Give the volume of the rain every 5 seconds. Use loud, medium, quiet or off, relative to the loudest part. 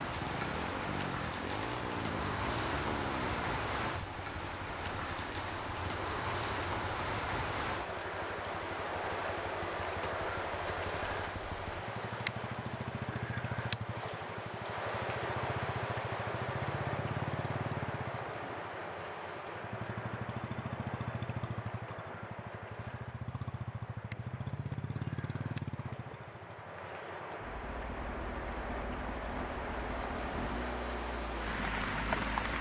loud, loud, loud, loud, medium, medium, loud.